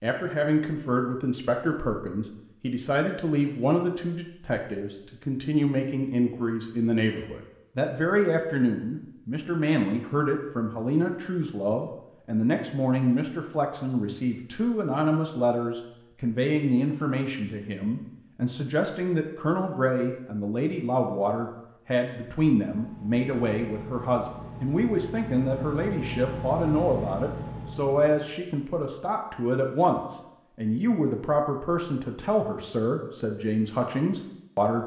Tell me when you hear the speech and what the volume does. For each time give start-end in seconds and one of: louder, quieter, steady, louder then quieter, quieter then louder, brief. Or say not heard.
0.0-34.8 steady.